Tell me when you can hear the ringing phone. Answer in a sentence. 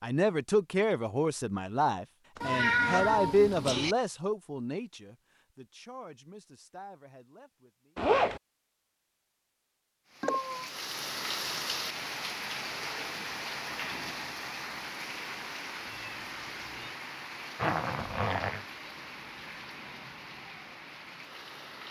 The ringing phone can't be heard in this clip.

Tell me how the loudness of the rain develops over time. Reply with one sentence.
The volume of the rain goes down.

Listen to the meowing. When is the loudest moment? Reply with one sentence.
The loudest moment of the meowing is at 3 seconds.